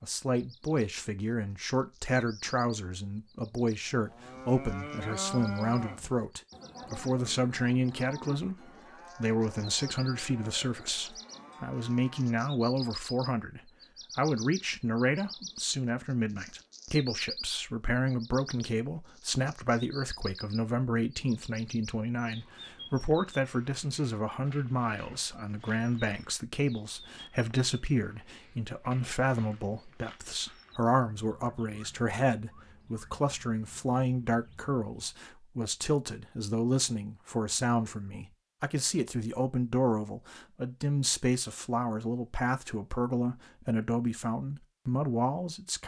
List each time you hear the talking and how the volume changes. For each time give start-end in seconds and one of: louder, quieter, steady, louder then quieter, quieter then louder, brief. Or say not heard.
0.0-45.8 steady.